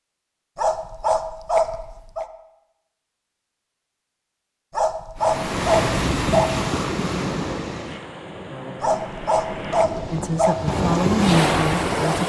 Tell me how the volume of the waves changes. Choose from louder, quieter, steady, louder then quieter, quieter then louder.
quieter then louder.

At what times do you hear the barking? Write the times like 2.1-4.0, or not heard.
0.6-2.2, 4.7-6.5, 8.8-10.6.